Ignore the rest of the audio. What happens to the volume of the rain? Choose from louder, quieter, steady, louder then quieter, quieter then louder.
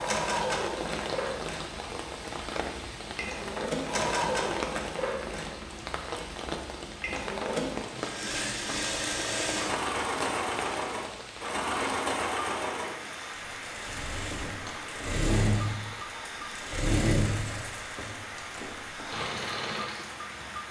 steady.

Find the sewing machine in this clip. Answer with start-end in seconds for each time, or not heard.
0.0-20.6.